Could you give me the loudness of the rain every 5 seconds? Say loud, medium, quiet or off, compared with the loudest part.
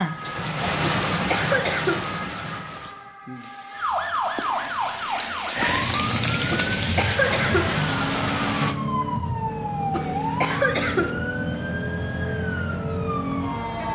loud, loud, off.